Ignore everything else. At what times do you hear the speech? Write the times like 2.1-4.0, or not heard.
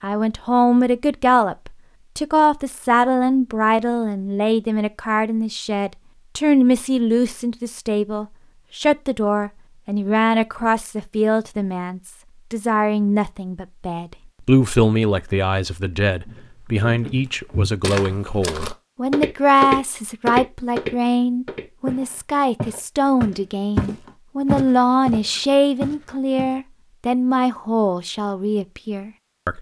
0.0-29.5.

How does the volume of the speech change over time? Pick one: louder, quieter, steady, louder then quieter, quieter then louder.
steady.